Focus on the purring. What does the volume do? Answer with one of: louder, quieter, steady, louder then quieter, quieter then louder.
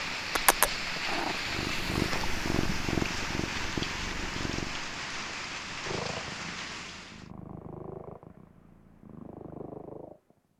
quieter.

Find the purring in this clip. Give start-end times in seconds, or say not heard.
0.3-10.5.